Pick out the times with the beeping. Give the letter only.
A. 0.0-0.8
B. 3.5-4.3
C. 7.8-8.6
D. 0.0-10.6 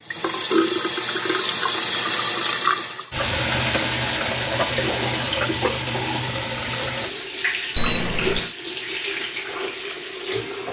C.